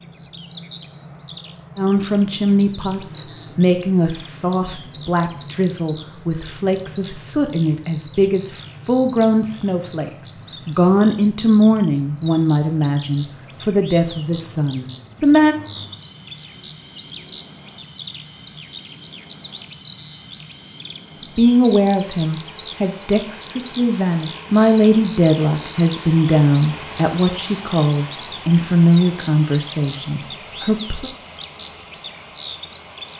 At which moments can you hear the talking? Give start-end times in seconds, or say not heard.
1.8-15.6, 21.4-31.1.